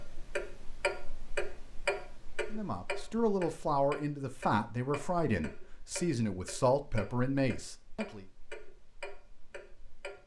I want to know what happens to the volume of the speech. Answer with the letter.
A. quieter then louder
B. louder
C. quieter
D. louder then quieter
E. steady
E.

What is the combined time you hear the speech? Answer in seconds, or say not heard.
6 s.